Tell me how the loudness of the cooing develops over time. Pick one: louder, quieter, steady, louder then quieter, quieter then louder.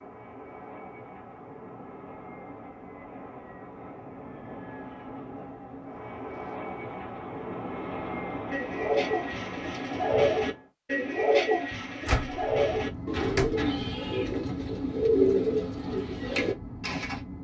steady.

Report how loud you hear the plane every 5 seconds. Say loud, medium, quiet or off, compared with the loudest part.
medium, loud, loud, loud.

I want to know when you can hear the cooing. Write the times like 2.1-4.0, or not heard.
8.5-17.2.